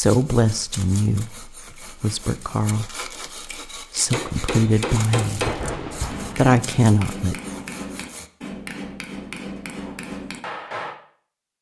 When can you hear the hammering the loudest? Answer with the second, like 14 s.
5 s.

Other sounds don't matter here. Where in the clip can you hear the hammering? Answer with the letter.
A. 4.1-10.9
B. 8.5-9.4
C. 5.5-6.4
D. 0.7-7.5
A.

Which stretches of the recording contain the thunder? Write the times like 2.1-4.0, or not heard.
5.5-6.4.